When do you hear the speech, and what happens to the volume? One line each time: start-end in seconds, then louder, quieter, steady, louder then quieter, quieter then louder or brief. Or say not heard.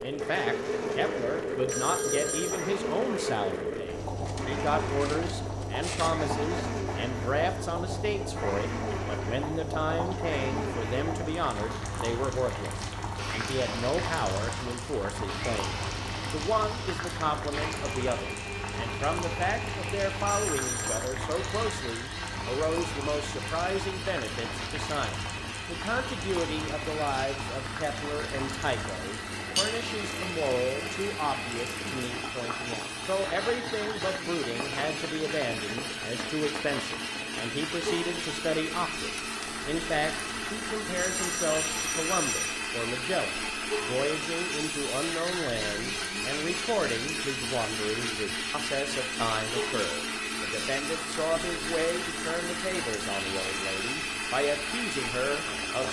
0.0-55.8 steady.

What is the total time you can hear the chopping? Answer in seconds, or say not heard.
not heard.